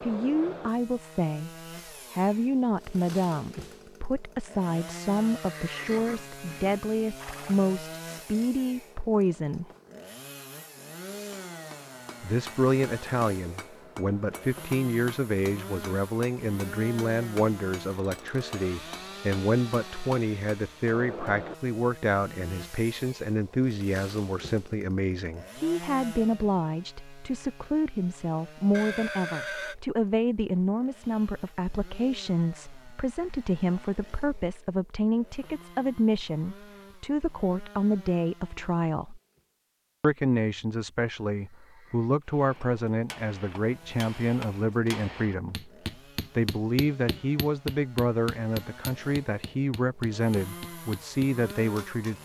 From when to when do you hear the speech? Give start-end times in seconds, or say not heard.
0.0-1.5, 2.1-9.7, 12.2-39.2, 40.0-45.7, 46.4-52.2.